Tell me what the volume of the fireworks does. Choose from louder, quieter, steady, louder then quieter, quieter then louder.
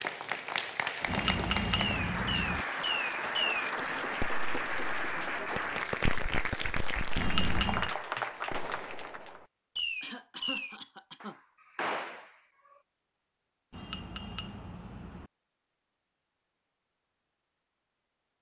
steady.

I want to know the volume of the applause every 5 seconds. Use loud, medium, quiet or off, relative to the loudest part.
loud, loud, off, off.